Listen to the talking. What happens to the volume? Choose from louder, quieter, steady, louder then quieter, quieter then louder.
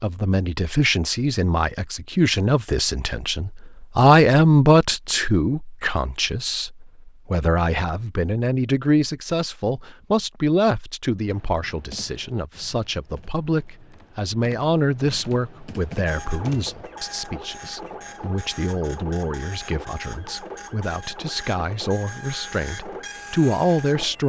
quieter.